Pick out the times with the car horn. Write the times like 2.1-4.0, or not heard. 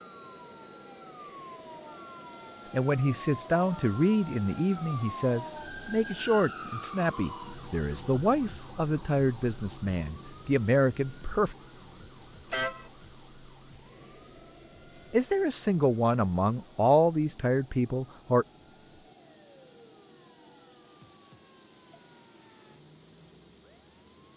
12.5-12.9.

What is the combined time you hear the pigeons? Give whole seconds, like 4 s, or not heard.
not heard.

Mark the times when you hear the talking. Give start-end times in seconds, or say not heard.
2.7-11.6, 15.1-18.4.